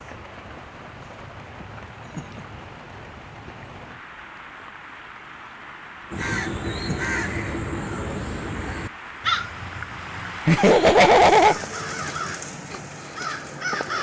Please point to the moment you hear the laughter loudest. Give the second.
11 s.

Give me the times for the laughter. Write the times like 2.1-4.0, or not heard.
1.6-2.5, 6.3-7.2, 10.4-11.6.